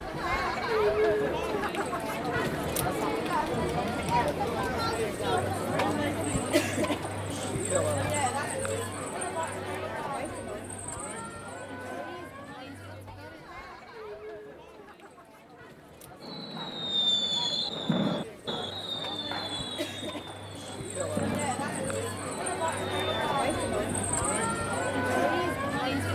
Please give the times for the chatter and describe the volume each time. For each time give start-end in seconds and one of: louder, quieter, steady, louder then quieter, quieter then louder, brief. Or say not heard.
0.0-26.1 quieter then louder.